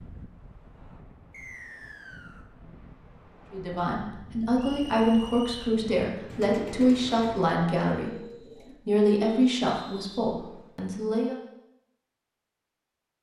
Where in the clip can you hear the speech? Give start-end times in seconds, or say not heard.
3.5-11.3.